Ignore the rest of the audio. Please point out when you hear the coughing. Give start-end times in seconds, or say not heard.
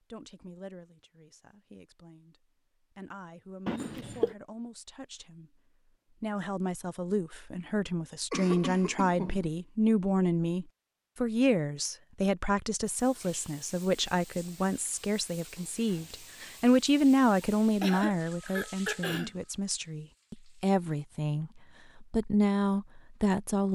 3.6-4.3, 8.3-9.5, 17.8-19.4.